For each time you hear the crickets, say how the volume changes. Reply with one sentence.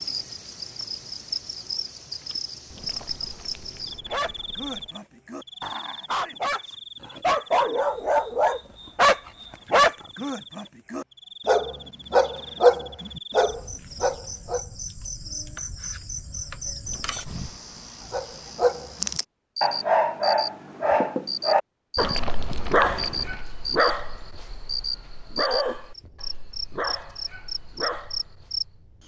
The crickets can be heard from 0.0 to 29.0 s, getting quieter then louder.